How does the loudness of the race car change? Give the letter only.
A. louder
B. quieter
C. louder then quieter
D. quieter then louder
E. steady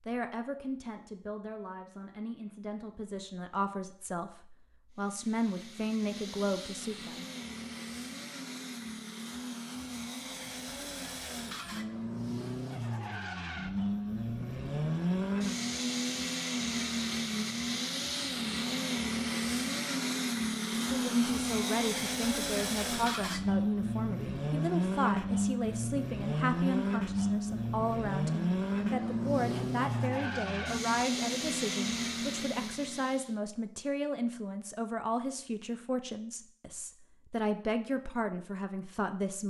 A.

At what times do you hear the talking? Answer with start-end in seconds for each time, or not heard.
0.0-7.2, 20.9-39.4.